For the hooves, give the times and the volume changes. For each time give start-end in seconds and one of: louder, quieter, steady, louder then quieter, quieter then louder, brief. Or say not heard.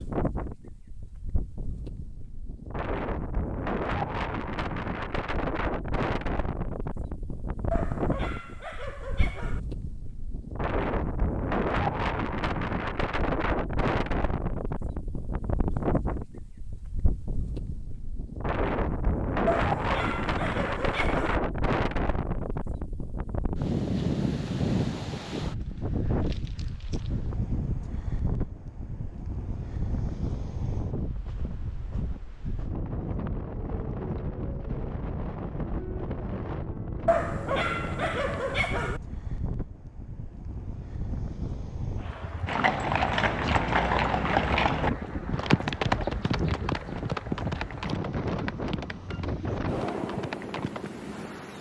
42.5-50.9 quieter.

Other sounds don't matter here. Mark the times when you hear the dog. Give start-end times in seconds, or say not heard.
7.7-9.6, 19.4-21.4, 37.0-39.0.